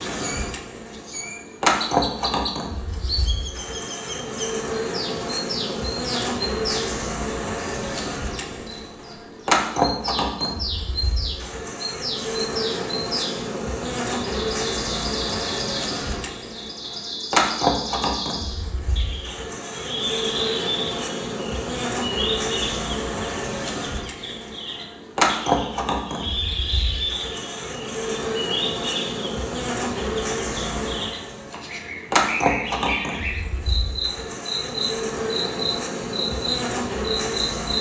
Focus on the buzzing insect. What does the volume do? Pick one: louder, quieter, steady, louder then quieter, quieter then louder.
steady.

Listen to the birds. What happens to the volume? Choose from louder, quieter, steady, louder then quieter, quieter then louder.
steady.